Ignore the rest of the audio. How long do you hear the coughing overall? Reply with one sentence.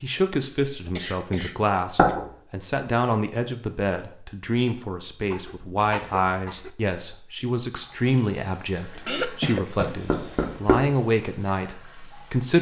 You can hear the coughing for 4 seconds altogether.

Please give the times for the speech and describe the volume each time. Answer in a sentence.
You can hear the speech from 0.0 to 12.5 s, at a steady volume.